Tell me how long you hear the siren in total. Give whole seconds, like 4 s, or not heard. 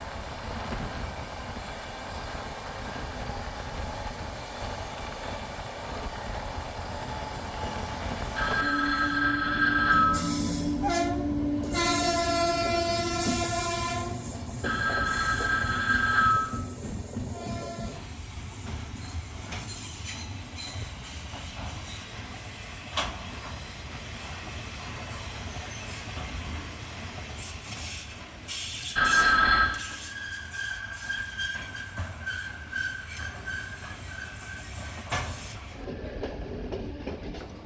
not heard.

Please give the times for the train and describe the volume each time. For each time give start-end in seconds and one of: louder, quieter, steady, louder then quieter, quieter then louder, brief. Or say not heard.
0.0-37.6 louder then quieter.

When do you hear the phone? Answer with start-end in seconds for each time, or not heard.
8.3-10.2, 14.6-16.6, 28.9-29.8.